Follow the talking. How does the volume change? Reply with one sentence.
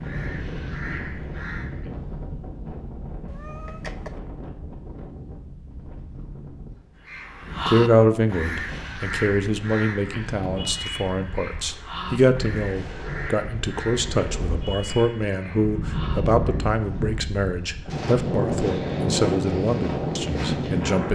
The volume of the talking stays about the same.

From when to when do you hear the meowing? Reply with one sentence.
The meowing can be heard from 3.2 to 4.2 s.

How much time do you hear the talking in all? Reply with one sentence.
The talking can be heard for 13 seconds in total.